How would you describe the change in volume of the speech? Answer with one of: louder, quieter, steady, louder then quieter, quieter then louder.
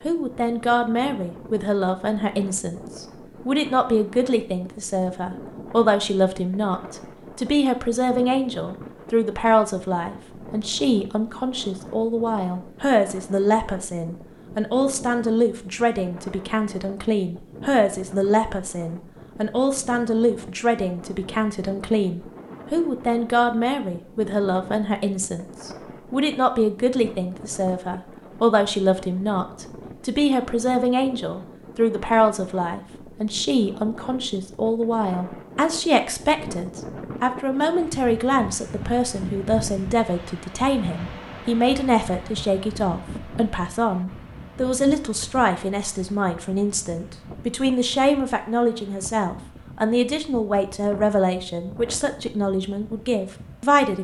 steady.